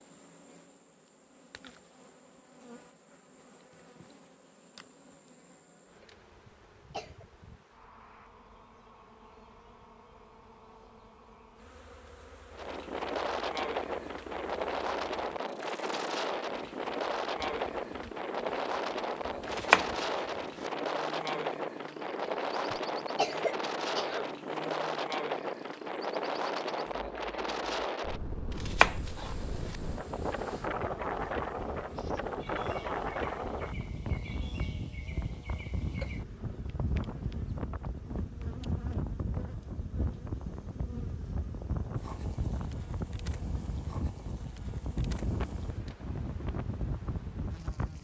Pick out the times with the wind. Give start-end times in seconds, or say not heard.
12.5-47.9.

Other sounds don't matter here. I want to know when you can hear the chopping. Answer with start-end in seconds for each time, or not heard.
19.5-20.2, 28.6-29.8.